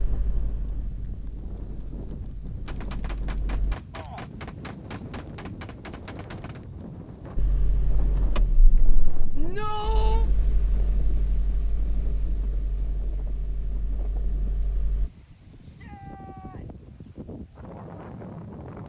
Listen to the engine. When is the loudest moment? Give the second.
8 s.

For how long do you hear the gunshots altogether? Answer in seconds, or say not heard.
4 s.